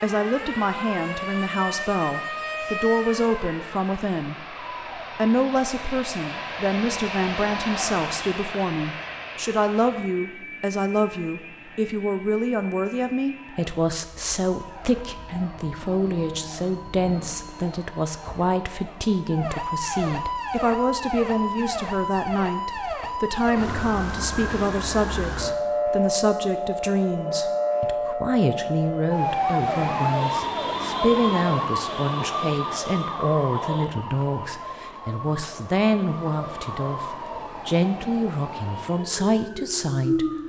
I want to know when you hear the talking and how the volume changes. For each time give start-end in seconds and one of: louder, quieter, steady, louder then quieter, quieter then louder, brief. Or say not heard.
0.0-40.4 steady.